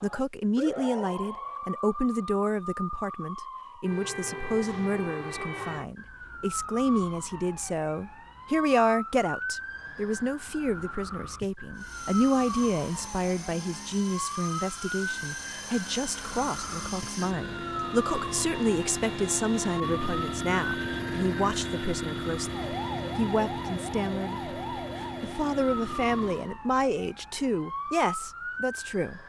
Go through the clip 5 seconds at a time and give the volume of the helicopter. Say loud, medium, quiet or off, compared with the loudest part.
off, off, medium, loud, loud, medium.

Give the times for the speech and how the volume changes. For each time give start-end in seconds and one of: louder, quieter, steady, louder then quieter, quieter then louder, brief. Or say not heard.
0.0-29.2 steady.